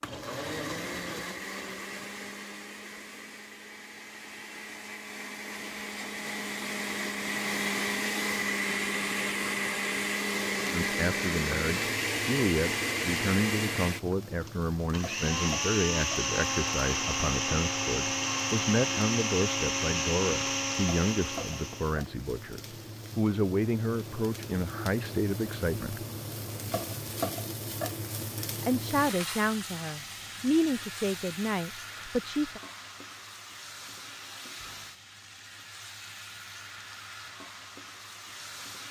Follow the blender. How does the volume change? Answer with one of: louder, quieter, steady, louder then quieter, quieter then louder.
louder.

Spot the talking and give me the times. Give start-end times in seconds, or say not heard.
10.7-26.1, 28.4-32.6.